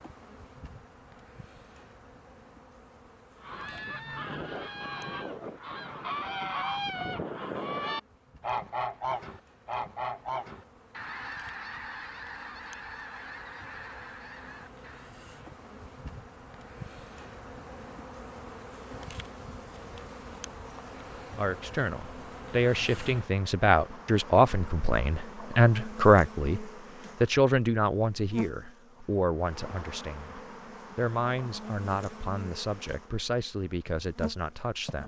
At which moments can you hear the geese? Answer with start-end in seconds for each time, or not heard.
3.4-15.1.